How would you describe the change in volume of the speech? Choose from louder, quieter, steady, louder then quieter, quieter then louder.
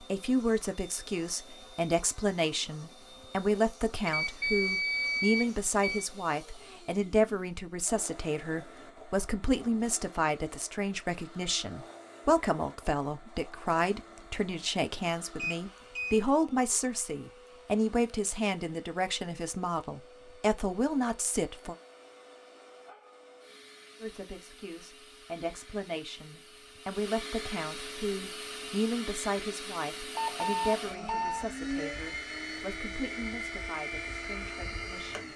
quieter.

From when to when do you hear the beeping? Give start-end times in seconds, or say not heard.
4.0-6.0, 15.3-16.2, 30.1-31.5.